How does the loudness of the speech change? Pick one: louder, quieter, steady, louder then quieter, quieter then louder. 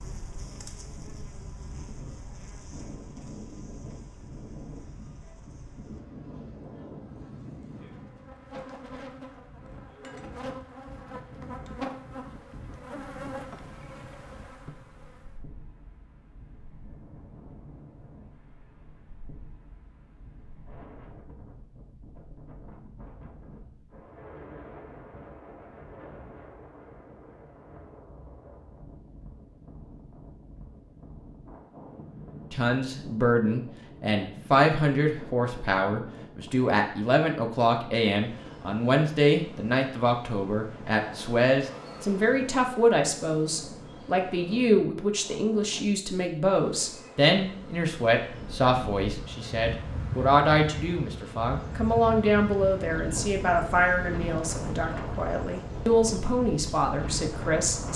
steady.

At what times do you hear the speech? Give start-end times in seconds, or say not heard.
32.5-57.9.